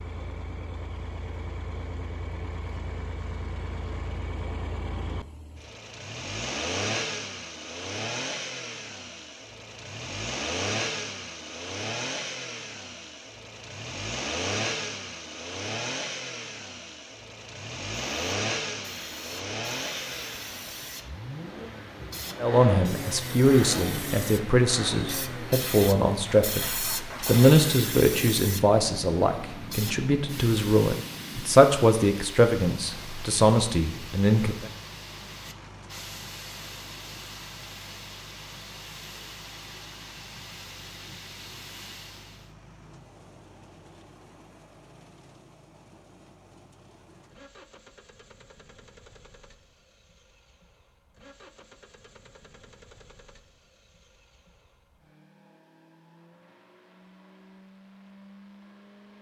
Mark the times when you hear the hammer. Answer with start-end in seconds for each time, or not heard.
not heard.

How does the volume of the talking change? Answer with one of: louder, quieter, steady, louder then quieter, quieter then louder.
steady.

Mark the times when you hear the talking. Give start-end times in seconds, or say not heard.
22.4-34.7.